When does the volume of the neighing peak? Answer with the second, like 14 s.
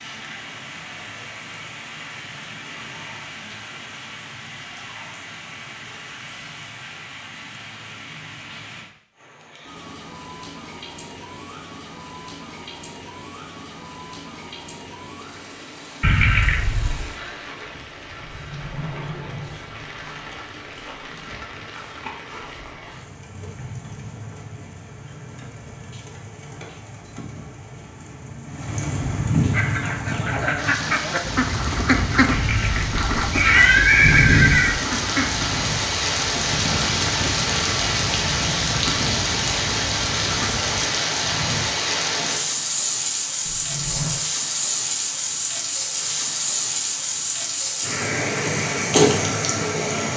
34 s.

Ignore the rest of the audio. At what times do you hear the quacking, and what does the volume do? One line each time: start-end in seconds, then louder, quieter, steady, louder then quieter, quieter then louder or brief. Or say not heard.
29.5-40.9 quieter.